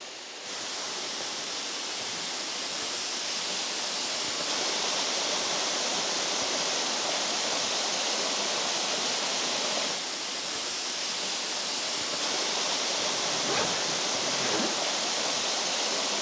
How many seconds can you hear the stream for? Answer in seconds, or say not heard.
16 s.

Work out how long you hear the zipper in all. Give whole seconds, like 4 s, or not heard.
2 s.